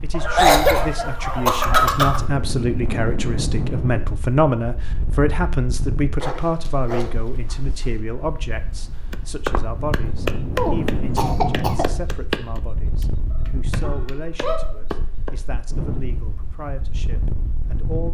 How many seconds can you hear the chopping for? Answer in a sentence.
The chopping can be heard for 6 seconds in total.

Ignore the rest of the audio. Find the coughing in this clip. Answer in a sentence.
You can hear the coughing from 0.3 to 2.2 s and from 10.6 to 11.8 s.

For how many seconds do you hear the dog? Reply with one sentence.
The dog can be heard for 5 seconds in total.